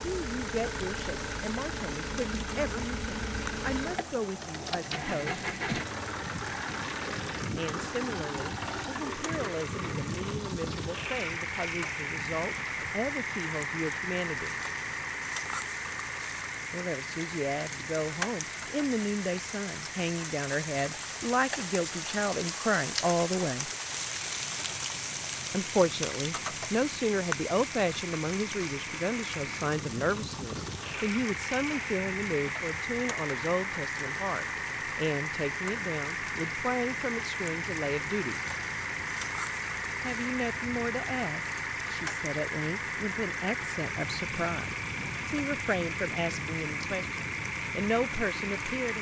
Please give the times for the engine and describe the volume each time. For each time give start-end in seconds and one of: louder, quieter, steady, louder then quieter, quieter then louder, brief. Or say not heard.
0.0-48.9 quieter then louder.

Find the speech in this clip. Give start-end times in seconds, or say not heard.
0.1-5.5, 7.5-14.6, 16.7-23.7, 25.5-38.4, 40.0-48.9.